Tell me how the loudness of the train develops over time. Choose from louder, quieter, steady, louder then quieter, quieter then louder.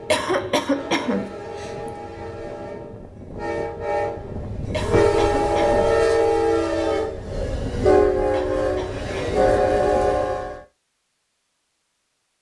louder.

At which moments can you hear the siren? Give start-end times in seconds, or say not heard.
not heard.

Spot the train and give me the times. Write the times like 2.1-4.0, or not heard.
0.0-10.6.